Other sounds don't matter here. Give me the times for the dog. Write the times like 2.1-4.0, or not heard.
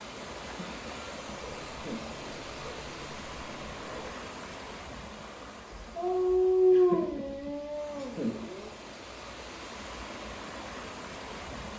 1.2-4.2, 6.0-8.7.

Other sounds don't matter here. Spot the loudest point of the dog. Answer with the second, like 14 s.
7 s.